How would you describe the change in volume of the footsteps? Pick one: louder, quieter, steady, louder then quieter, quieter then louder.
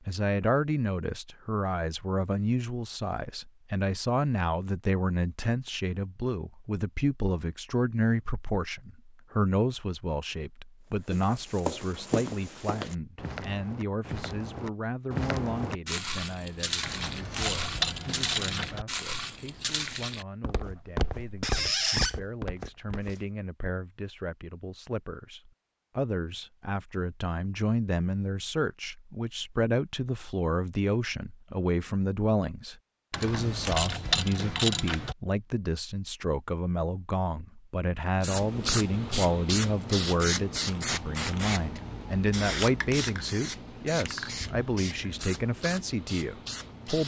steady.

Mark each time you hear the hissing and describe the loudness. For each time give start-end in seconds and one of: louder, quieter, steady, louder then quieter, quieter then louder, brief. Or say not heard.
38.2-47.0 quieter.